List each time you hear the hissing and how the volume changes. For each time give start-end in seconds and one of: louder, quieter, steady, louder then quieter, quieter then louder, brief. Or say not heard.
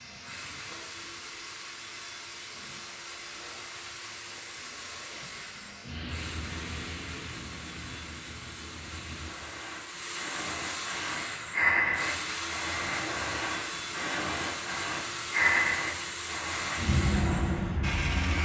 0.0-18.4 louder.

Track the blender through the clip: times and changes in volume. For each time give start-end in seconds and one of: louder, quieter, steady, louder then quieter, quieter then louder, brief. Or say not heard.
0.0-18.4 louder.